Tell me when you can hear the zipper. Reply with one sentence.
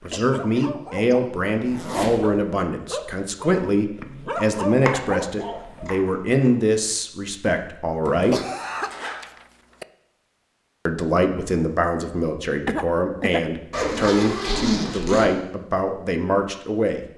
You can hear the zipper from 1.6 to 2.5 s, from 8.1 to 9.2 s and from 13.7 to 15.3 s.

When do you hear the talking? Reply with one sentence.
You can hear the talking from 0.0 to 8.4 s and from 10.8 to 17.0 s.